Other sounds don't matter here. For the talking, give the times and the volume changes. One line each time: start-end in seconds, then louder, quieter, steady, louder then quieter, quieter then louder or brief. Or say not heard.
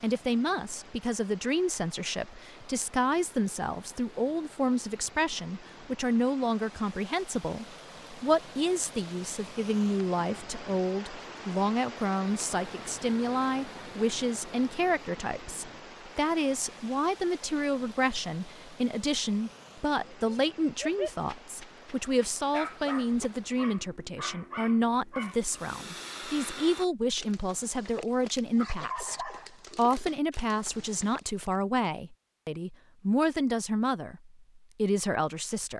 0.0-35.7 steady.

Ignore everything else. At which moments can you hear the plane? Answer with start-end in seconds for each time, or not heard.
not heard.